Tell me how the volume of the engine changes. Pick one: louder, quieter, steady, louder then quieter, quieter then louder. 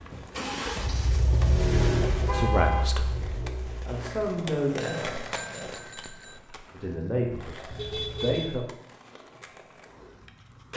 louder then quieter.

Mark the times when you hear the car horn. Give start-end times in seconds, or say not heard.
2.2-2.9, 7.7-8.6.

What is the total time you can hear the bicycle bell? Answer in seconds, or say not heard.
2 s.